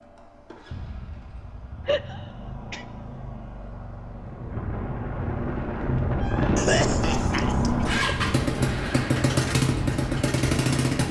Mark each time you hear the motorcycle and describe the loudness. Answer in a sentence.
You can hear the motorcycle from 0.0 to 11.0 s, getting louder.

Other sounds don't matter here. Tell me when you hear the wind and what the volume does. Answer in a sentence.
You can hear the wind from 4.1 to 11.0 s, getting louder then quieter.